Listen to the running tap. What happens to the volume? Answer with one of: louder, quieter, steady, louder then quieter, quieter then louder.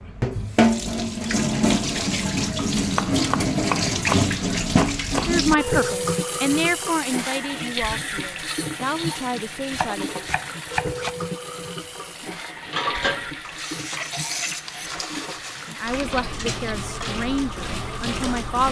quieter.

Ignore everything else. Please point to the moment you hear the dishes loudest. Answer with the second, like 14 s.
13 s.